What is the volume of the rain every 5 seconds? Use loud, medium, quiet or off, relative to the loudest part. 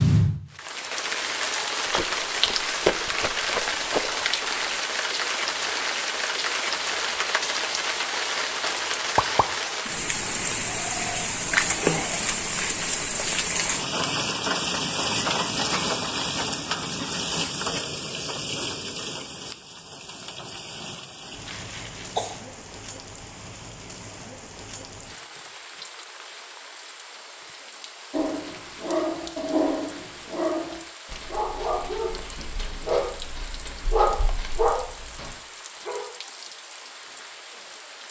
loud, loud, loud, loud, quiet, quiet, quiet, quiet.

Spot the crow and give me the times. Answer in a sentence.
The crow can't be heard in this clip.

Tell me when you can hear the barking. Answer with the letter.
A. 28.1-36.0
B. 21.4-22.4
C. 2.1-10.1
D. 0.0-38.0
A.